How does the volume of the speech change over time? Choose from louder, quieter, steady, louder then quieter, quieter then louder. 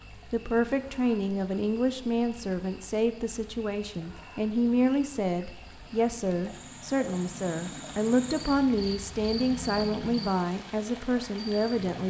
steady.